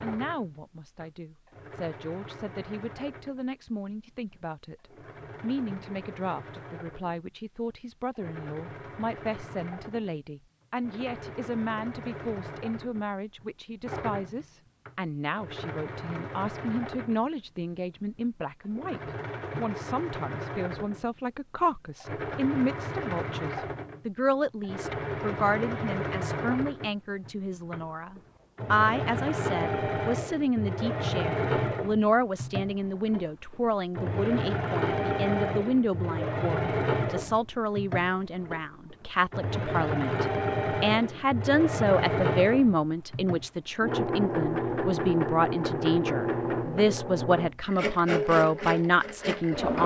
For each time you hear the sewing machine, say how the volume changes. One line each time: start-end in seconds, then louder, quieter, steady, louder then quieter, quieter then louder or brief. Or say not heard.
0.0-49.8 louder.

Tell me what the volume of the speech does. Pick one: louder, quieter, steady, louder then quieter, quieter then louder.
louder.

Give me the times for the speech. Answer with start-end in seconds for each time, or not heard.
0.0-49.8.